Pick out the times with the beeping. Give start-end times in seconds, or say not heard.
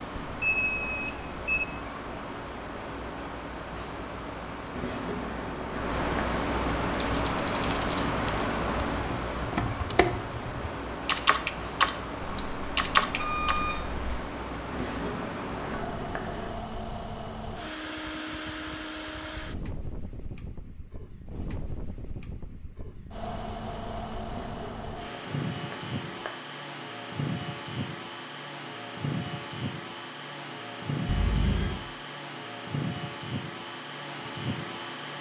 0.2-1.6, 12.2-14.2, 31.1-31.8.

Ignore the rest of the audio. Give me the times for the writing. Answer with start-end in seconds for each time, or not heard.
4.8-6.2, 14.7-16.6, 24.2-26.3.